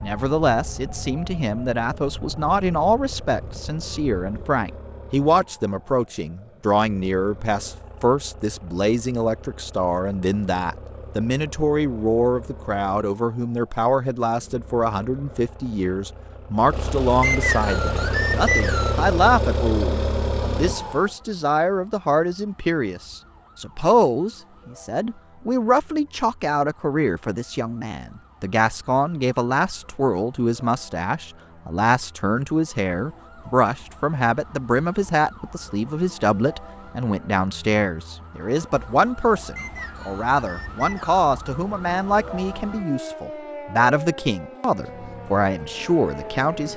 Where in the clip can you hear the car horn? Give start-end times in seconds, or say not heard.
not heard.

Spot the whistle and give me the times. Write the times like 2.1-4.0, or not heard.
17.2-19.0, 39.5-41.2.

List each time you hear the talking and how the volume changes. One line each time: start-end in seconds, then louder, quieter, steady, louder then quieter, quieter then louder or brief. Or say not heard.
0.0-46.7 steady.